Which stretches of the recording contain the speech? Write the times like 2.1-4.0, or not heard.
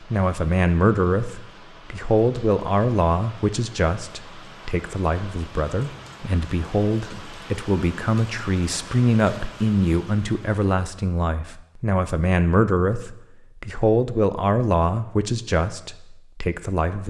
0.0-17.0.